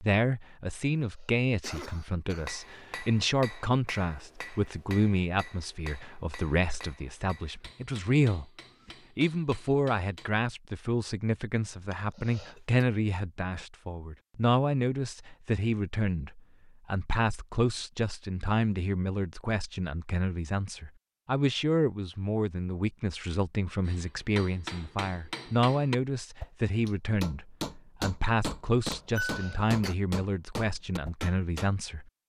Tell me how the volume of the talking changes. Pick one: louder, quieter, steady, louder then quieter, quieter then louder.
steady.